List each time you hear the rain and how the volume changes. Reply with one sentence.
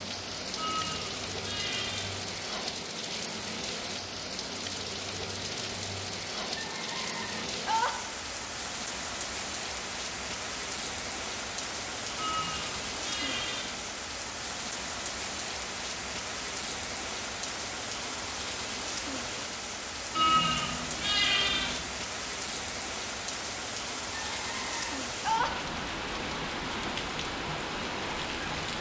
You can hear the rain from 0.0 to 28.7 s, at a steady volume.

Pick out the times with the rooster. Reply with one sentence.
The rooster can be heard from 6.5 to 8.0 s and from 24.3 to 25.6 s.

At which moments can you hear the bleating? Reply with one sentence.
You can hear the bleating from 0.6 to 2.2 s, from 12.2 to 13.8 s and from 20.1 to 21.8 s.